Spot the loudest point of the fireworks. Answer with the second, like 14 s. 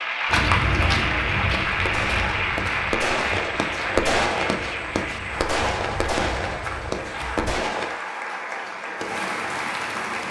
4 s.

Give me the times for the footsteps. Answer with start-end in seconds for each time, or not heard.
0.2-7.5.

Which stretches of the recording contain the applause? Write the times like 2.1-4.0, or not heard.
0.0-10.2.